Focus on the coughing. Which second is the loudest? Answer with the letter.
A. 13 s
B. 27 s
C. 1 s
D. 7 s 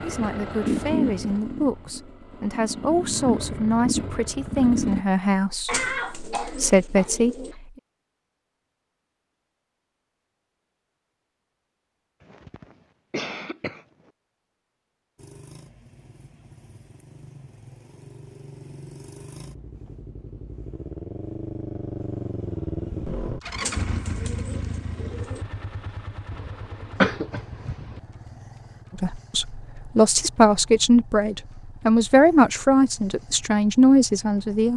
B.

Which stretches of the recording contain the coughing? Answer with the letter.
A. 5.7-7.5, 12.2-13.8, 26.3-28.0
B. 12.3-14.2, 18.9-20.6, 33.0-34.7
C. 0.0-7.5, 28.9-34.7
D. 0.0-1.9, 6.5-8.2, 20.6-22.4
A.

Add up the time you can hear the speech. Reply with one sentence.
The speech can be heard for 13 seconds in total.